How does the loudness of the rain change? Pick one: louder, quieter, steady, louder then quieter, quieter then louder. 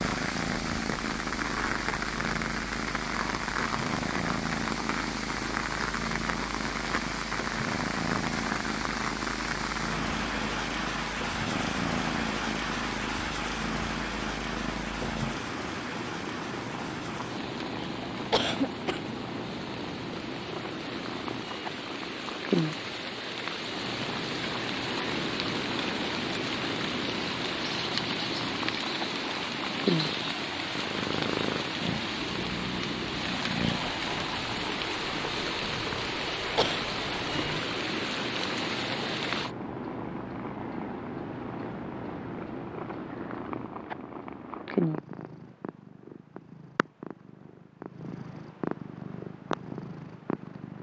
quieter then louder.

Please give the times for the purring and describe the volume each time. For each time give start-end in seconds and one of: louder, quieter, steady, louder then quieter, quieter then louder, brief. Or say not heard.
0.0-50.7 steady.